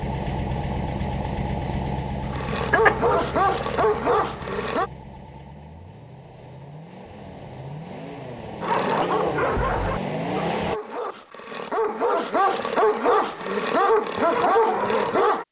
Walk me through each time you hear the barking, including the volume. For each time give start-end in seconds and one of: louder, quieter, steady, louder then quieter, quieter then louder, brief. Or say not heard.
2.2-4.9 brief
8.6-15.4 quieter then louder.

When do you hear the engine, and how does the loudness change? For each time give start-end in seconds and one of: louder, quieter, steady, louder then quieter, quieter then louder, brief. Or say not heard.
0.0-10.8 quieter then louder.